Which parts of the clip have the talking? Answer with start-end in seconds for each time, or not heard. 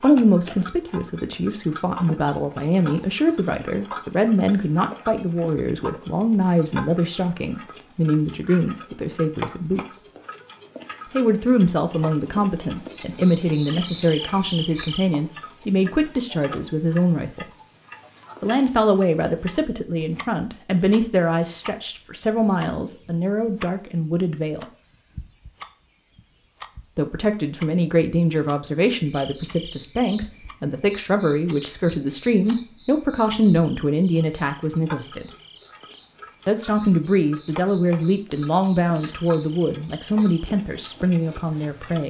0.0-10.0, 11.1-17.5, 18.4-24.6, 26.9-35.3, 36.5-42.0.